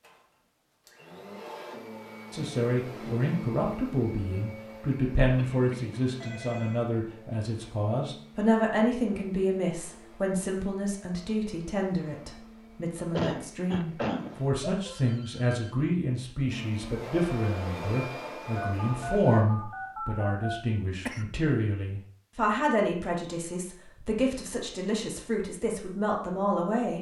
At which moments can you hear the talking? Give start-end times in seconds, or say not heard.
2.3-26.9.